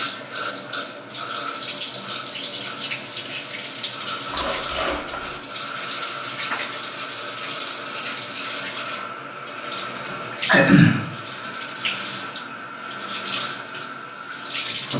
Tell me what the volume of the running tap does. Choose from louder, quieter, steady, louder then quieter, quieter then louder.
steady.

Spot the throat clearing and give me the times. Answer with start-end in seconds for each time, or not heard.
9.9-11.0.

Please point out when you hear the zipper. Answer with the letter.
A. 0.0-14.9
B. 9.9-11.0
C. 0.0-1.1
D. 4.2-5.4
D.